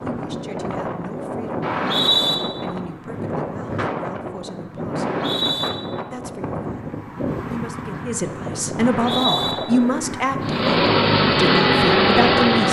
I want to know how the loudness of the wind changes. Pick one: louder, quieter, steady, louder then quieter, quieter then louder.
steady.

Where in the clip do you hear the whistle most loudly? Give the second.
2 s.